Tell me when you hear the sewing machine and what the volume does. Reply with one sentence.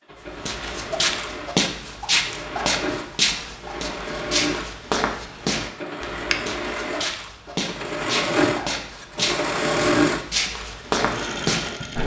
The sewing machine can be heard from 0.0 to 12.0 s, getting louder.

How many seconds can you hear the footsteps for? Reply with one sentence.
The footsteps can be heard for 12 seconds in total.